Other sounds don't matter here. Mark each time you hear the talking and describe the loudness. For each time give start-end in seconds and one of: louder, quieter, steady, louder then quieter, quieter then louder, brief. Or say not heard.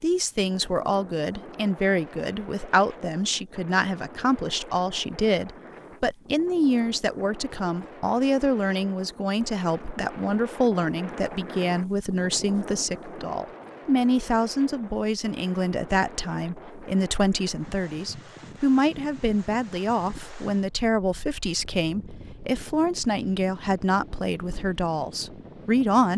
0.0-26.1 steady.